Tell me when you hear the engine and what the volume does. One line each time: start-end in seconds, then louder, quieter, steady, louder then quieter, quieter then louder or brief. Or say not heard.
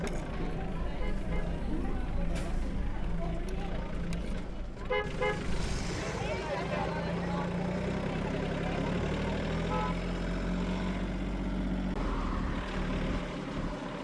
0.0-13.9 louder.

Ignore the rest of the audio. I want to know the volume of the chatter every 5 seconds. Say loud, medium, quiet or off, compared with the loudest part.
loud, loud, off.